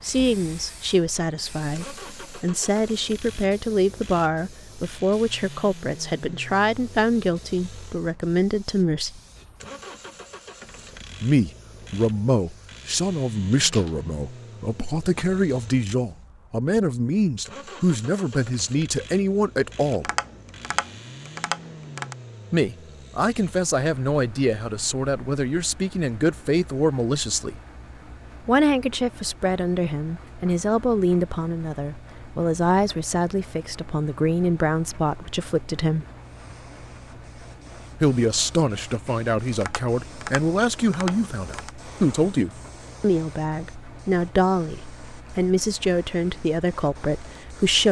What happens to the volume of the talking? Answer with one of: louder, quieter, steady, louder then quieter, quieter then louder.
steady.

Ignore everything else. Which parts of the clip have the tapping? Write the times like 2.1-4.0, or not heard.
19.9-22.1, 39.5-41.7.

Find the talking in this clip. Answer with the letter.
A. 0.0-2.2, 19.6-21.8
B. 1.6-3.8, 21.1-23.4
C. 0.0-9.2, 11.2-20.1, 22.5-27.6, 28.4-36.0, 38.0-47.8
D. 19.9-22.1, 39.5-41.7
C.